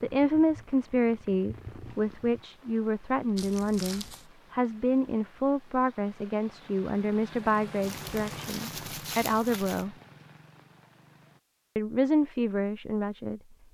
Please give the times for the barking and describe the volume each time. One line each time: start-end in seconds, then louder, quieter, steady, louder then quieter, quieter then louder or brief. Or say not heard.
not heard.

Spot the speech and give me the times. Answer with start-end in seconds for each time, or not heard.
0.0-9.9, 11.8-13.4.